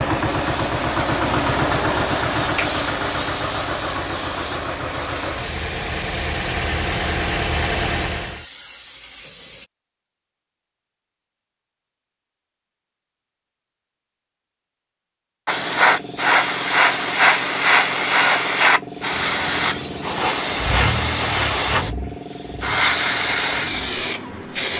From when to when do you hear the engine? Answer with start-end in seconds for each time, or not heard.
0.0-8.4, 19.1-24.6.